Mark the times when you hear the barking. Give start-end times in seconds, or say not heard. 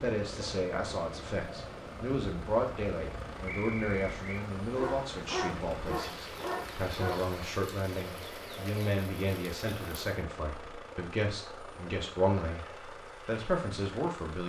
4.8-7.3.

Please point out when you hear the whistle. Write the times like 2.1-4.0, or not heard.
3.5-4.5.